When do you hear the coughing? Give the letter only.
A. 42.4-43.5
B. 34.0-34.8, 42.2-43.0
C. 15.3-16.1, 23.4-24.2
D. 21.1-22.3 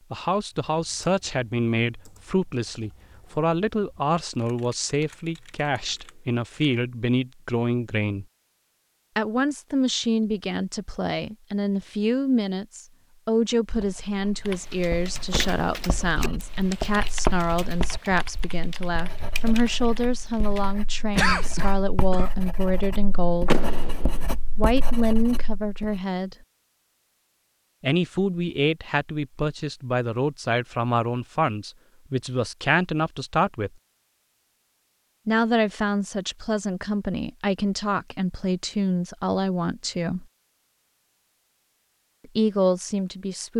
D.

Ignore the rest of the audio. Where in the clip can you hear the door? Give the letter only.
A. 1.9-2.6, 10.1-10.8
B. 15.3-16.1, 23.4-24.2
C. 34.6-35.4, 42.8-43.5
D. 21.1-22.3
B.